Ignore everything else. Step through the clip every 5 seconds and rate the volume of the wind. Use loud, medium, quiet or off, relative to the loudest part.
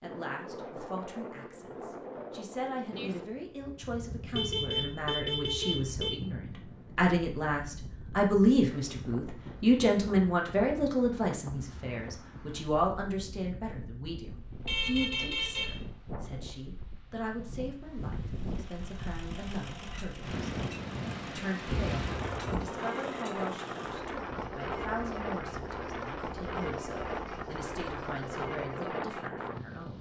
medium, medium, medium, medium, loud, loud.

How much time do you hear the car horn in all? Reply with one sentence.
You can hear the car horn for 4 seconds altogether.